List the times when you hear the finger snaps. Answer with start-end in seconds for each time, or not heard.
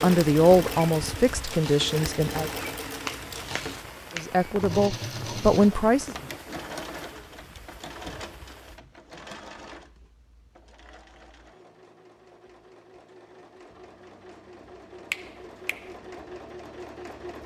3.0-4.2, 15.1-15.9.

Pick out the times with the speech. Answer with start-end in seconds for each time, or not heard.
0.0-2.5, 4.2-6.2.